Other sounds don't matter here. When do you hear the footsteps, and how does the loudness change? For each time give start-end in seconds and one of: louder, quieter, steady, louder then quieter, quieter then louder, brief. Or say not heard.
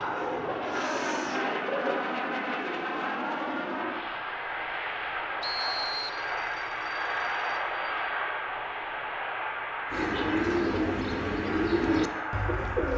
not heard.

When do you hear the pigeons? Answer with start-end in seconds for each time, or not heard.
0.0-2.0, 9.9-12.9.